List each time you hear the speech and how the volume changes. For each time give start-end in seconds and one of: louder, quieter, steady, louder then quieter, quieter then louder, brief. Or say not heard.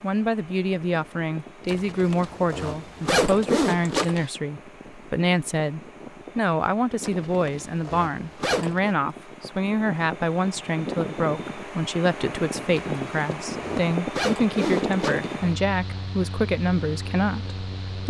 0.0-18.0 steady.